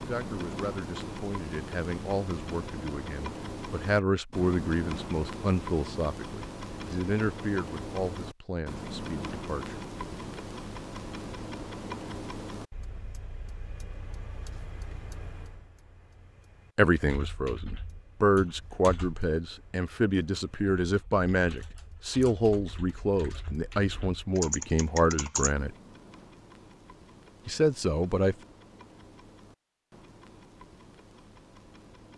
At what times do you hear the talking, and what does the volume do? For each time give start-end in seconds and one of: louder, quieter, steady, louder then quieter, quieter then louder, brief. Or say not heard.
0.0-9.8 louder then quieter
16.8-25.7 steady
27.4-28.4 brief.